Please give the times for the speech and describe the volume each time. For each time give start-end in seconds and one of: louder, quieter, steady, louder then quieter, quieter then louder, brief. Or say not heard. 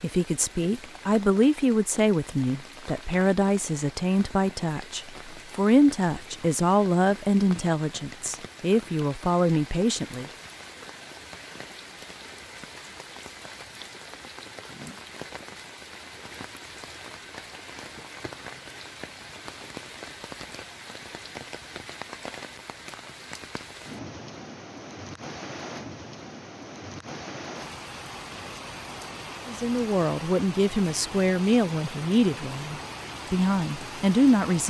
0.0-10.2 steady
29.4-34.6 quieter then louder.